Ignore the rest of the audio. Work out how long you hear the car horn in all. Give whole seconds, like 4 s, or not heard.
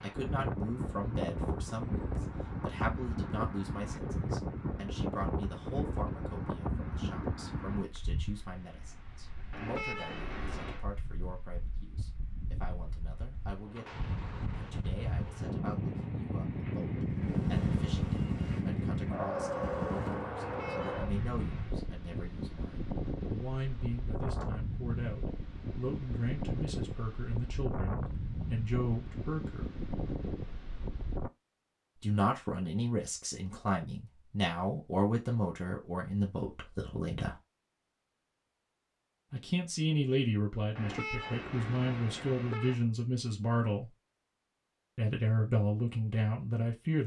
5 s.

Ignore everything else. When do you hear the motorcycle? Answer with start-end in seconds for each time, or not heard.
17.1-20.4.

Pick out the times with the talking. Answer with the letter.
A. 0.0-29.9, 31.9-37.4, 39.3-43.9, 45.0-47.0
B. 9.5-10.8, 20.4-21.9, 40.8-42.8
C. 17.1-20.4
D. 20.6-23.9
A.